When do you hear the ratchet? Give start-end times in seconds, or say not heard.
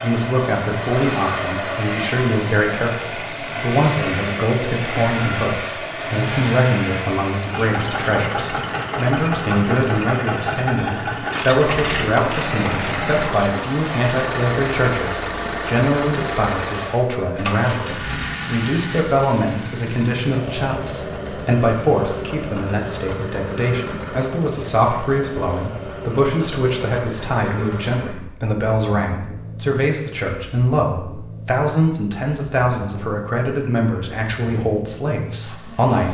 11.2-13.8.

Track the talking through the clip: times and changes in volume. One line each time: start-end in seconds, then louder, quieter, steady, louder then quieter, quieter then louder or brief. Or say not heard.
0.0-36.1 steady.